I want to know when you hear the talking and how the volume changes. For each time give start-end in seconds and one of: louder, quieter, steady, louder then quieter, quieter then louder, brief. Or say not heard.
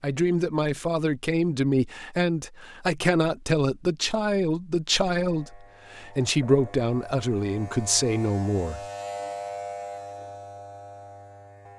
0.0-8.8 steady.